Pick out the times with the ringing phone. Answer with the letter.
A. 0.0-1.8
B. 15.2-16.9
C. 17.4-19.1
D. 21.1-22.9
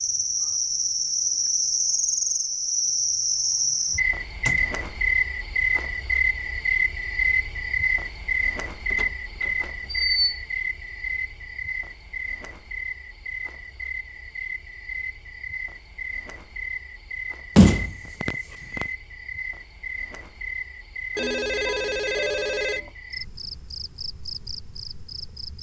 D.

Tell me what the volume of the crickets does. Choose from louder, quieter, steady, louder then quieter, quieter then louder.
quieter.